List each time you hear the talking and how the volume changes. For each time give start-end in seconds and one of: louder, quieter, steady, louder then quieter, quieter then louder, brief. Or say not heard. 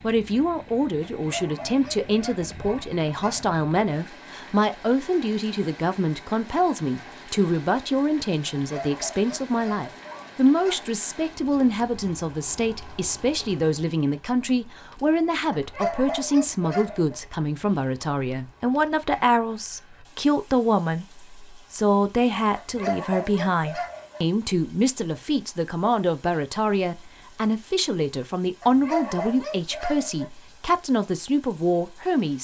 0.0-32.4 steady.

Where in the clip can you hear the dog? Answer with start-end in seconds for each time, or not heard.
1.1-3.5, 8.6-10.8, 15.5-17.1, 22.6-24.2, 28.6-30.2.